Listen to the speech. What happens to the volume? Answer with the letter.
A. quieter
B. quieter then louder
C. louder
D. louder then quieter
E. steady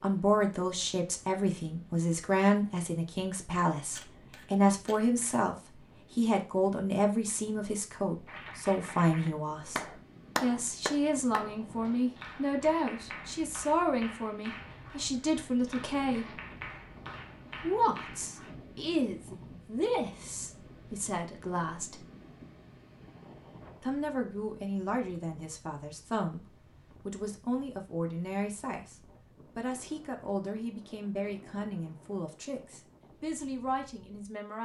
A.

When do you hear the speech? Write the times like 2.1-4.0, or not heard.
0.0-16.4, 17.6-22.1, 23.8-34.6.